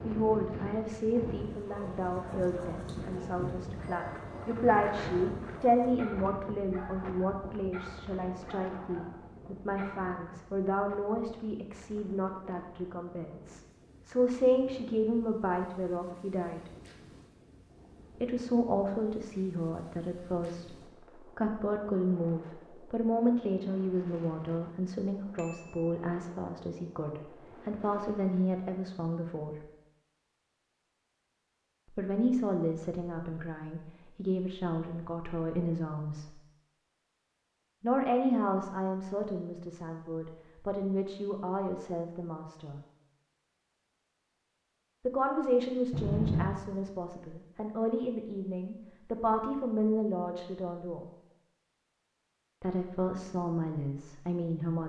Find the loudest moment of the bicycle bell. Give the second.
46 s.